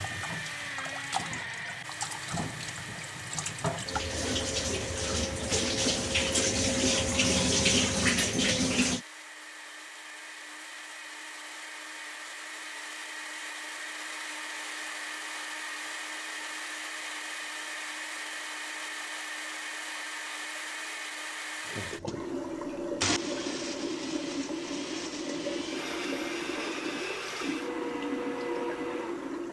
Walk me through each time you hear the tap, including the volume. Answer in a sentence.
The tap can be heard from 0.0 to 9.1 s, getting louder; and from 21.6 to 29.4 s, at a steady volume.